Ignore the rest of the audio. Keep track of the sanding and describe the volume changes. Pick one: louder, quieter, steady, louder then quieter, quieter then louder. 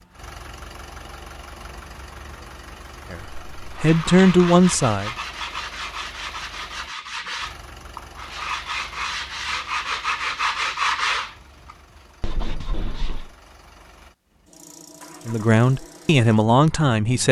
louder then quieter.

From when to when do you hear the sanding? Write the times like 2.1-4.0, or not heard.
3.8-13.3.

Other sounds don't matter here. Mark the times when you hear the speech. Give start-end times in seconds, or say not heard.
3.1-5.2, 15.2-17.2.